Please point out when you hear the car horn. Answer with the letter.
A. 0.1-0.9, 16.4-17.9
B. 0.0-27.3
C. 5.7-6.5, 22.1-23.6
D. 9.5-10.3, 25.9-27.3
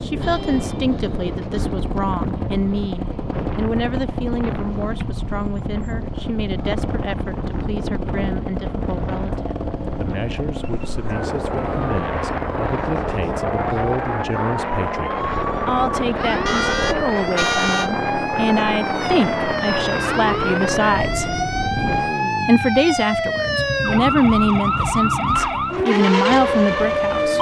A.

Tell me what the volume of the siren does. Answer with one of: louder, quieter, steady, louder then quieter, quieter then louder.
louder.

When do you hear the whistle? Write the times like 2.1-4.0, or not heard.
not heard.